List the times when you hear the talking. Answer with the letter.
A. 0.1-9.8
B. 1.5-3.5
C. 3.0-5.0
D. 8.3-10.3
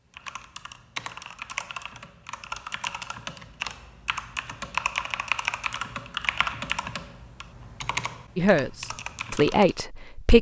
D.